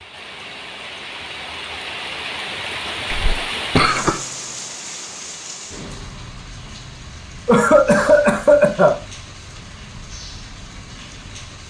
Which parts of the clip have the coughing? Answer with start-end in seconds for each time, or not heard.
3.1-4.2, 7.5-8.9.